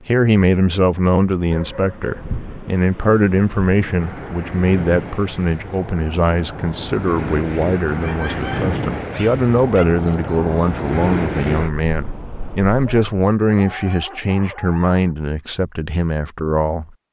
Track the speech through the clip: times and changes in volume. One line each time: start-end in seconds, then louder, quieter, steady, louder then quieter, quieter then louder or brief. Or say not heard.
0.1-16.9 steady.